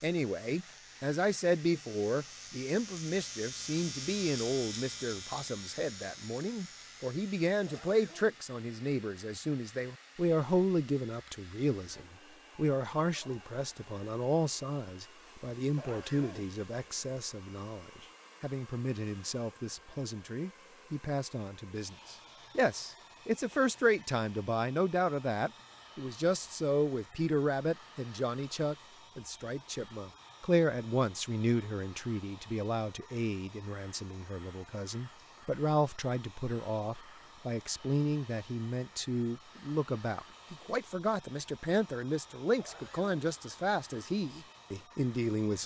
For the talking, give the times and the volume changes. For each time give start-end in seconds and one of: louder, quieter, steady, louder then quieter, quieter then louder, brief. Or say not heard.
0.0-45.6 steady.